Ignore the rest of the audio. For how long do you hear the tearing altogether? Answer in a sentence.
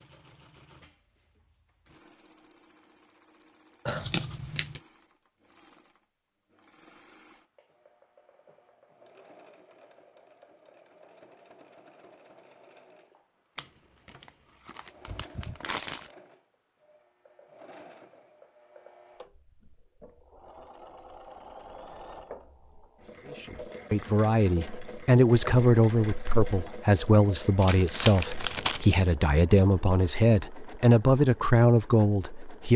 You can hear the tearing for 5 seconds altogether.